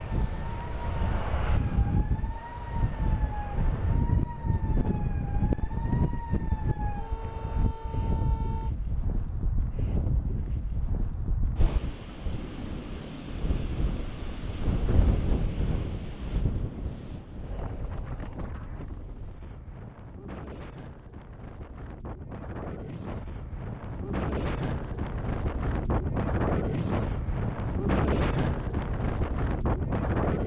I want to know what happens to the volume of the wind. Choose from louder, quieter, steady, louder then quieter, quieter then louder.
quieter then louder.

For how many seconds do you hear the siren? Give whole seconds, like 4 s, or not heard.
9 s.